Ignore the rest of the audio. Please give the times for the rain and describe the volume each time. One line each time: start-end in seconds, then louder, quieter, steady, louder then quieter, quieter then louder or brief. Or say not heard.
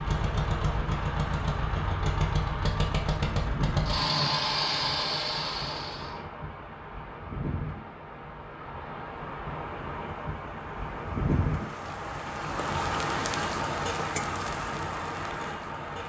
0.0-16.0 louder.